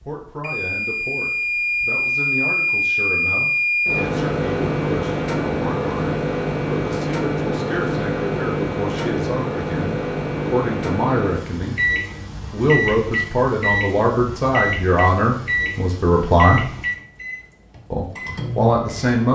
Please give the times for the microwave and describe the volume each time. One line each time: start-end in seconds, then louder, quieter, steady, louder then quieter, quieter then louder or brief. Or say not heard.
0.4-19.2 quieter.